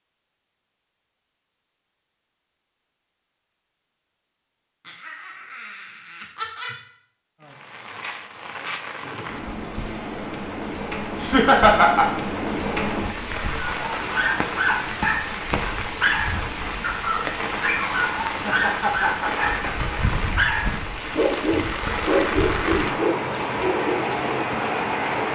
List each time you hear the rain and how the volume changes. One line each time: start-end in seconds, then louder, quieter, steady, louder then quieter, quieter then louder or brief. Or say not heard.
7.4-25.3 louder.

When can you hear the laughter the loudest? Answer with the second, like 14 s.
12 s.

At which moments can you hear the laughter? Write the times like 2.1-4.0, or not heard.
4.8-6.8, 11.2-12.1, 18.2-19.9.